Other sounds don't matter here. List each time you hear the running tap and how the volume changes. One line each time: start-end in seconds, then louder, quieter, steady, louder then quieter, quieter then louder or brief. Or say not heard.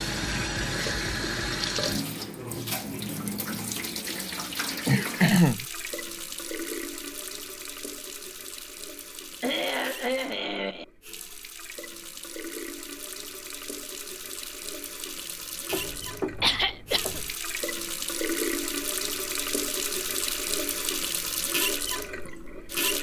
0.0-22.9 quieter then louder.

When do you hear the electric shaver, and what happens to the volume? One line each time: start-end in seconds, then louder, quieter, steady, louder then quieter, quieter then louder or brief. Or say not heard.
not heard.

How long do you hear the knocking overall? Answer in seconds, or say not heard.
2 s.